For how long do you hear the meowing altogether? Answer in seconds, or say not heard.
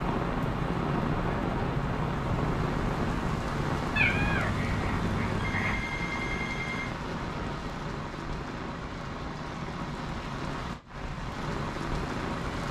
2 s.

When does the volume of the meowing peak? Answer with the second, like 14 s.
4 s.